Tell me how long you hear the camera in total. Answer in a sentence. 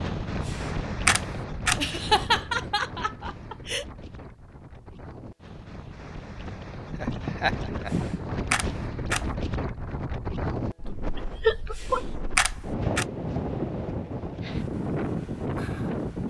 You can hear the camera for 4 seconds altogether.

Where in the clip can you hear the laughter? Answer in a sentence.
You can hear the laughter from 1.8 to 3.9 s, from 6.9 to 8.3 s and from 11.2 to 12.0 s.